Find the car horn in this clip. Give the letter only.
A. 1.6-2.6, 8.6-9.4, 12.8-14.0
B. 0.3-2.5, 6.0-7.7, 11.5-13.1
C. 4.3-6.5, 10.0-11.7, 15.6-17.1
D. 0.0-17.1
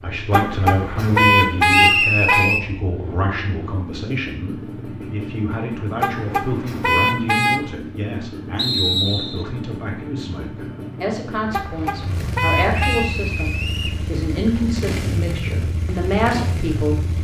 B.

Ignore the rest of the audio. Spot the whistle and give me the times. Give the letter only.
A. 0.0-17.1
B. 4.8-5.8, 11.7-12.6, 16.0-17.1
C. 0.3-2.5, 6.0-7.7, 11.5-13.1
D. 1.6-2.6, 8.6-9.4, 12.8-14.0
D.